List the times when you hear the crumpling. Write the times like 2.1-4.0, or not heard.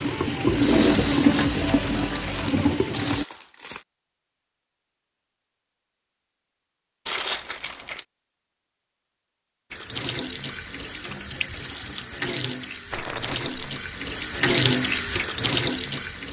2.1-3.9, 7.0-8.1, 12.9-13.8.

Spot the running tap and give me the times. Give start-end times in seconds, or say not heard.
0.0-3.2, 9.7-16.2.